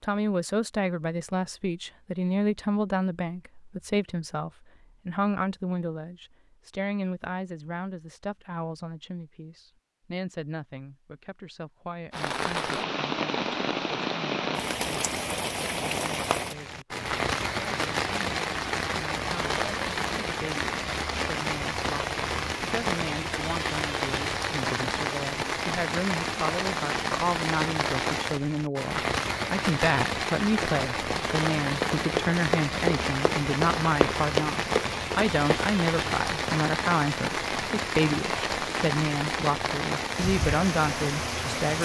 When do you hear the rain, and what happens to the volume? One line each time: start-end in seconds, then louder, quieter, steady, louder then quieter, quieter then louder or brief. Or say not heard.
12.1-41.8 steady.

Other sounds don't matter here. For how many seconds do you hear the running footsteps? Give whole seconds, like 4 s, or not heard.
5 s.